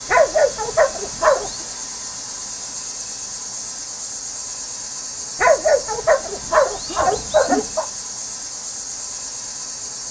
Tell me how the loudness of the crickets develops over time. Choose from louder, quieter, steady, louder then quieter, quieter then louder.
steady.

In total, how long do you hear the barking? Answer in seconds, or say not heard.
4 s.